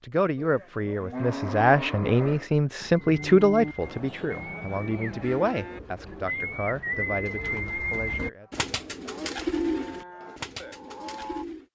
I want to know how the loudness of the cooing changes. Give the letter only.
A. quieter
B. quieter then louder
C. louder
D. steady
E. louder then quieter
C.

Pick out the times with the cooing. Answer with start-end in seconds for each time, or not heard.
3.0-11.7.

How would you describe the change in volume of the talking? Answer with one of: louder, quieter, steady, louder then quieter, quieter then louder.
quieter.